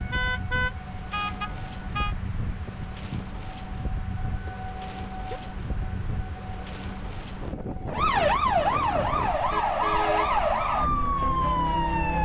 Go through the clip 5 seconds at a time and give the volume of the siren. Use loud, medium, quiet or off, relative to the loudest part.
quiet, loud, loud.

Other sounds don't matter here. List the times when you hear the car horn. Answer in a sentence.
You can hear the car horn from 0.1 to 2.1 s, from 4.5 to 5.4 s and from 9.5 to 10.3 s.